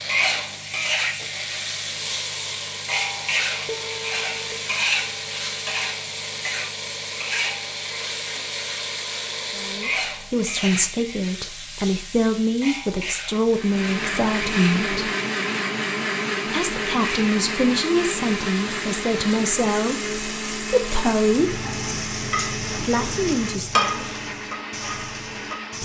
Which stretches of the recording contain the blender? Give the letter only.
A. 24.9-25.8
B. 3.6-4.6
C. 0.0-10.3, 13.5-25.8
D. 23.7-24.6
C.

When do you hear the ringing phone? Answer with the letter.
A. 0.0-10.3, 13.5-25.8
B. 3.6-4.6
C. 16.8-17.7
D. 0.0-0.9
B.